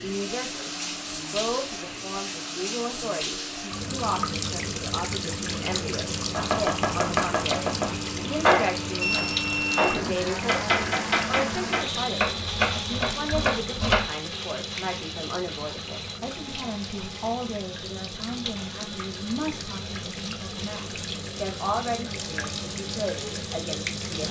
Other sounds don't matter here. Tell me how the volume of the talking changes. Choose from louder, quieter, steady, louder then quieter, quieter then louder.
steady.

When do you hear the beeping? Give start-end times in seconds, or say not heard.
9.0-10.1.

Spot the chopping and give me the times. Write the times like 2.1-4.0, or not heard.
6.3-14.1.